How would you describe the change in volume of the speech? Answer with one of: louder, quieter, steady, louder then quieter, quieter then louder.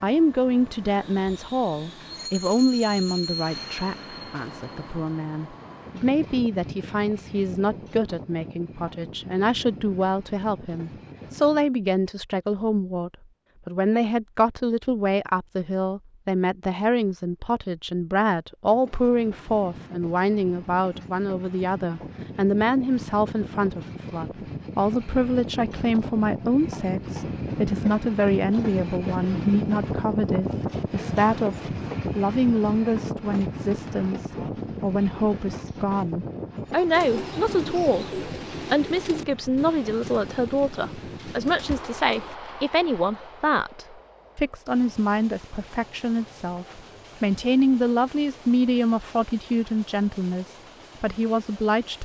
steady.